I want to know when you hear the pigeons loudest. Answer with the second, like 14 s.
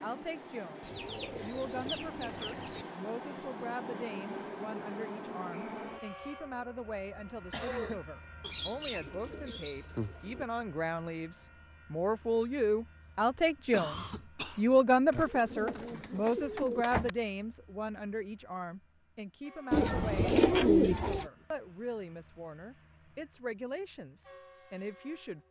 21 s.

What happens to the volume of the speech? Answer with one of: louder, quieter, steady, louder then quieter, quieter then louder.
louder then quieter.